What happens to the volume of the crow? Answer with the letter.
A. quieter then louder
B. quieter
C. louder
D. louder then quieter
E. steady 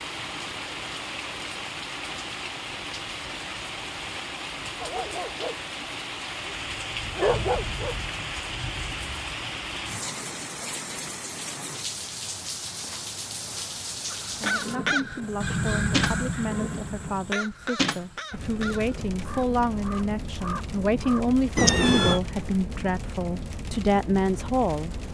B.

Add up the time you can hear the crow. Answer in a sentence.
The crow can be heard for 7 seconds in total.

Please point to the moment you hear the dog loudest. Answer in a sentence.
The loudest moment of the dog is at 7 seconds.